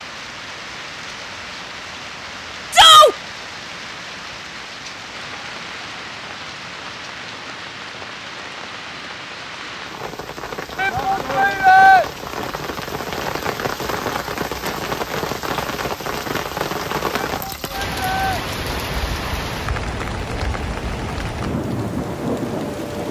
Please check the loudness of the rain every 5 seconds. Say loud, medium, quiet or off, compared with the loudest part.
medium, medium, loud, loud, loud.